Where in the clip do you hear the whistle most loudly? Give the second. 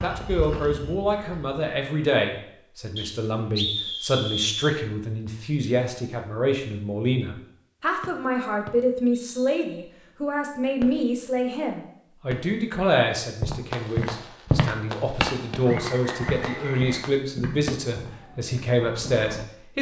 4 s.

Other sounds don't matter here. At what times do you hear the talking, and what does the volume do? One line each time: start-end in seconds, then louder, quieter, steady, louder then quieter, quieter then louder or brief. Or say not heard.
0.0-19.7 steady.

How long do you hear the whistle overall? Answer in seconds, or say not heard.
5 s.